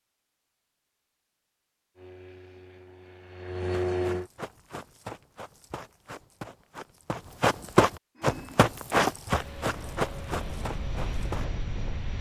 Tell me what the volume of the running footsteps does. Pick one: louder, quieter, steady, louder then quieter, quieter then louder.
louder then quieter.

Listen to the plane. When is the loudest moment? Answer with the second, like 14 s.
4 s.